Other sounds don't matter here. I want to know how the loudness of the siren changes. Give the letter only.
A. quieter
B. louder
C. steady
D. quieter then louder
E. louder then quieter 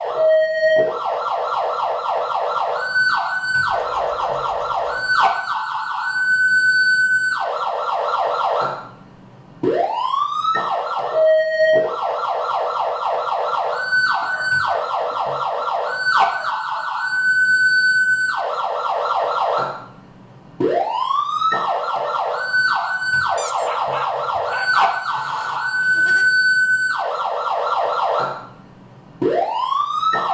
C.